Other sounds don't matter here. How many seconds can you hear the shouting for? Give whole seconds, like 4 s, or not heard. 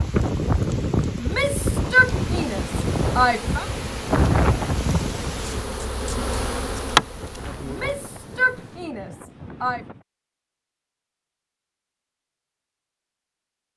5 s.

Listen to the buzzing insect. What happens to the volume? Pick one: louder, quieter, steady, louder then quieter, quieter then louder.
louder then quieter.